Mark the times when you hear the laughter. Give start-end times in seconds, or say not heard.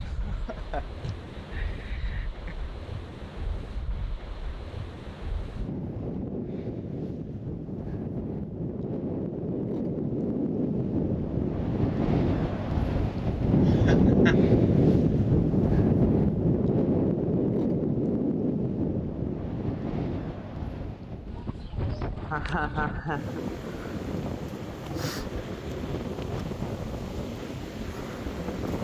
0.1-2.5, 13.7-14.3, 21.4-23.4.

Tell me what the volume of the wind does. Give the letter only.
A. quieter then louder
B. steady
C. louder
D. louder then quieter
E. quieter
D.